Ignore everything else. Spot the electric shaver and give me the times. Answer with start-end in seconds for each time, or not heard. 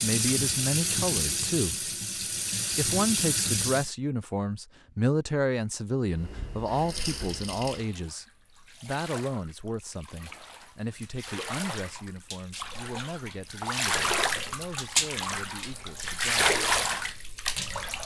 not heard.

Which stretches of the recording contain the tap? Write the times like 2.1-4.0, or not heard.
0.0-3.9, 6.1-18.0.